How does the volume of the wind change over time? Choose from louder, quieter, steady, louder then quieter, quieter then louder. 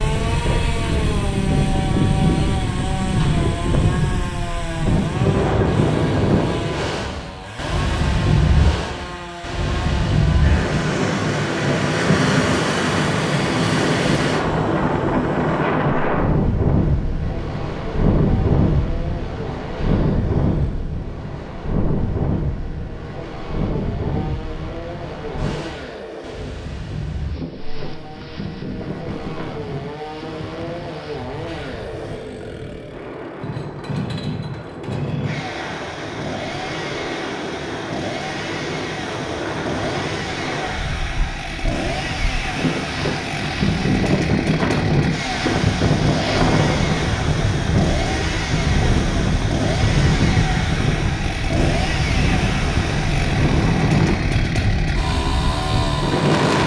quieter then louder.